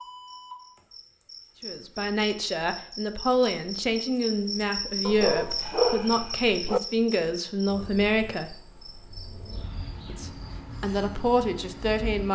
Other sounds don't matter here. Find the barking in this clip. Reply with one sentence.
You can hear the barking from 5.0 to 6.8 s.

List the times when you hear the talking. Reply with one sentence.
You can hear the talking from 1.6 to 8.5 s and from 10.1 to 12.3 s.